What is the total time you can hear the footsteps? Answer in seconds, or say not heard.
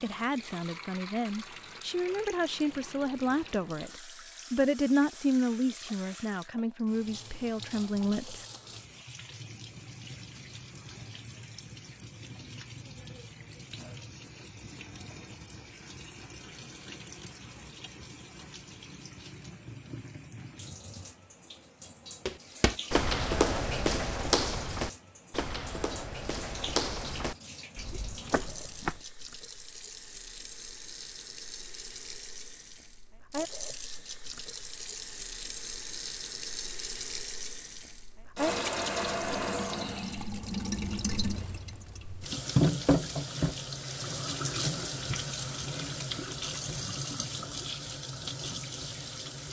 7 s.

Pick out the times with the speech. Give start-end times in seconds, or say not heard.
0.0-8.4.